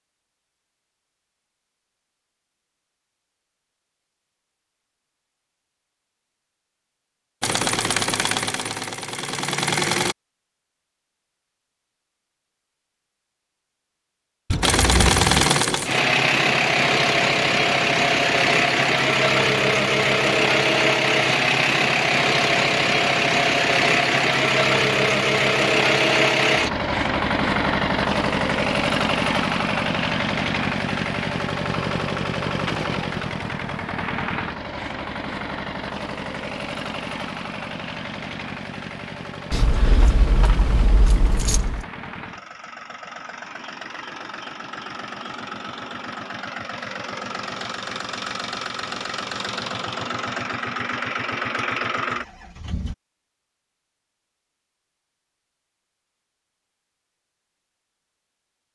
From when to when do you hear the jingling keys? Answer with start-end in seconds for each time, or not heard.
14.5-15.3, 39.5-41.9.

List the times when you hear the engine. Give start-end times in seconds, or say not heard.
7.4-10.2, 14.6-53.0.